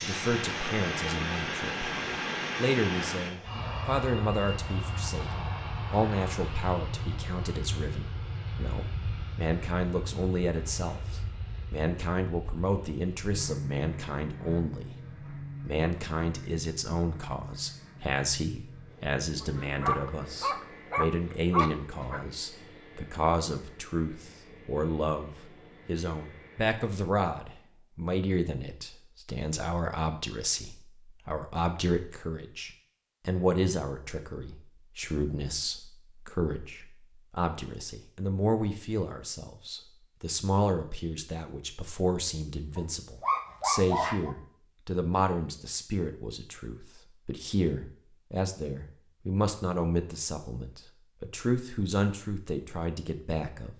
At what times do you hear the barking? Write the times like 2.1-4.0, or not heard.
19.4-22.2, 42.8-44.4.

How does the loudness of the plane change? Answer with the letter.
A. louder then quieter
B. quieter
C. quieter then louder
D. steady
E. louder
B.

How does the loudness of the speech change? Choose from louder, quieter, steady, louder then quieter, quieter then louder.
steady.